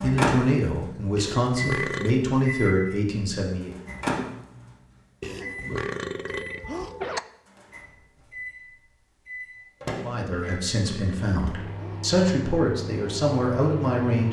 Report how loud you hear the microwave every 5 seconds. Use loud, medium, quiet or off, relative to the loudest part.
loud, medium, medium.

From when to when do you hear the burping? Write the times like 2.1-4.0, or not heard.
1.1-2.2, 5.2-7.2, 10.3-12.1.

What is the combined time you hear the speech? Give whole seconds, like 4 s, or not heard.
8 s.